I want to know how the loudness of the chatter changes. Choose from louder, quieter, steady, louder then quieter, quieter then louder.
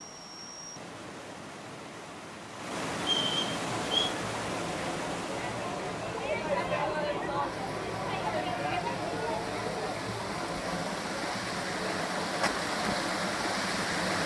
louder then quieter.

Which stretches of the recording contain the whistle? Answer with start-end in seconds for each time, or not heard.
3.0-4.1.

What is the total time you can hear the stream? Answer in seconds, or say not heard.
14 s.